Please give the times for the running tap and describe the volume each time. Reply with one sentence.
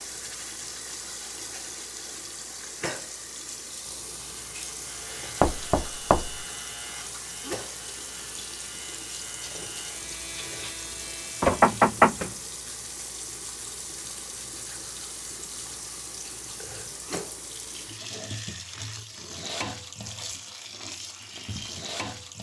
The running tap can be heard from 0.0 to 22.3 s, at a steady volume.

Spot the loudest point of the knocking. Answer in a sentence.
The volume of the knocking peaks at 12 seconds.